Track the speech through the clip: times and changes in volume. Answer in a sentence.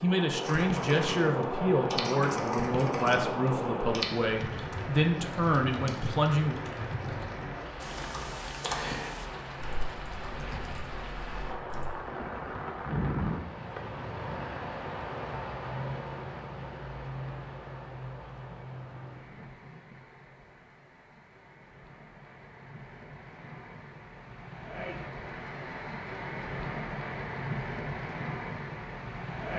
The speech can be heard from 0.0 to 6.6 s, at a steady volume.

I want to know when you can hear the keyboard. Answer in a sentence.
The keyboard can be heard from 0.4 to 11.9 s.